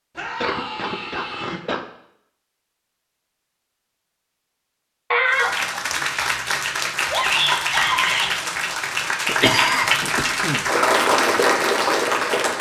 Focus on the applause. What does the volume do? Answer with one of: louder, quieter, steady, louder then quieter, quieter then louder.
louder.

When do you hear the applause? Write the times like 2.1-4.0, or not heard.
5.2-12.5.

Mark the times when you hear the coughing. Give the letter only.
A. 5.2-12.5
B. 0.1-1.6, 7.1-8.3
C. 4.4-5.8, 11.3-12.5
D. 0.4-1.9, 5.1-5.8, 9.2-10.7
D.